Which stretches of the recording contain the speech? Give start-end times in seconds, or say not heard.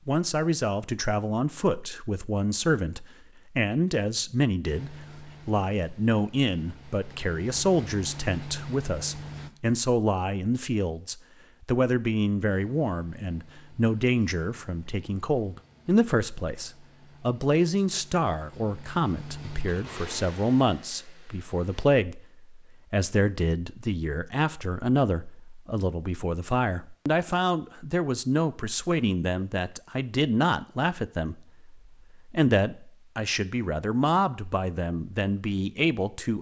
0.1-36.3.